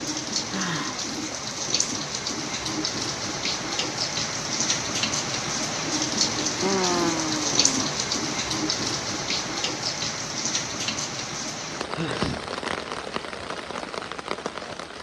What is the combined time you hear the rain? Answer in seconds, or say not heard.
15 s.